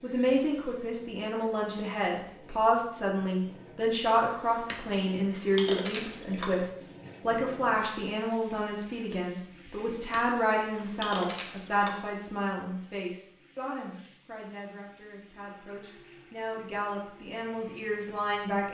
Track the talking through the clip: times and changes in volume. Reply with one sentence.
You can hear the talking from 0.0 to 18.6 s, getting quieter.